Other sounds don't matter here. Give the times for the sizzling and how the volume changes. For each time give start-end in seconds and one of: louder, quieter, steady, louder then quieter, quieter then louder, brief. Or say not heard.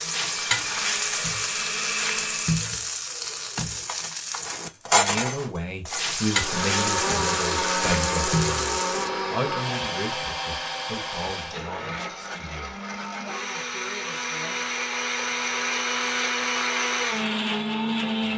0.0-9.1 steady.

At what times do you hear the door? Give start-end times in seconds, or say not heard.
not heard.